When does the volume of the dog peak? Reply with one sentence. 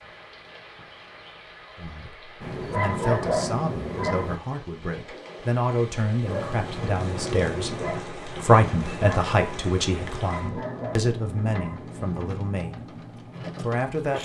The loudest moment of the dog is at 3 seconds.